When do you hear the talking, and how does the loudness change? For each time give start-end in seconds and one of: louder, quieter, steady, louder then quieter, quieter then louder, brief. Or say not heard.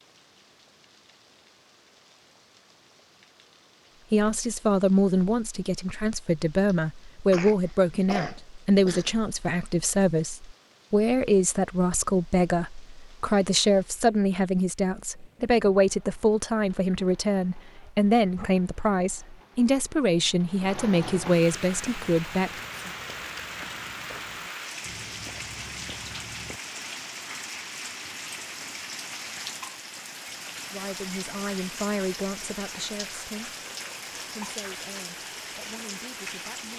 4.1-22.5 steady
30.7-36.7 quieter.